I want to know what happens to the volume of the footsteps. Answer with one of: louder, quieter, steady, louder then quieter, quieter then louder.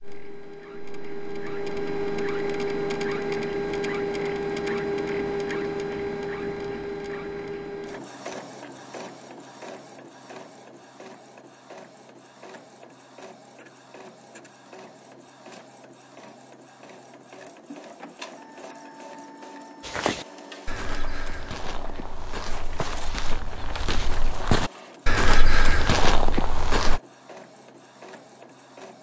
louder.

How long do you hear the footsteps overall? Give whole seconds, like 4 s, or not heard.
7 s.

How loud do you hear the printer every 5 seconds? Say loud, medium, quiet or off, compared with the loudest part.
loud, loud, quiet, quiet, quiet, quiet.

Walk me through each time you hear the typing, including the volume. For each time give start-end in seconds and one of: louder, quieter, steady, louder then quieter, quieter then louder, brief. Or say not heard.
not heard.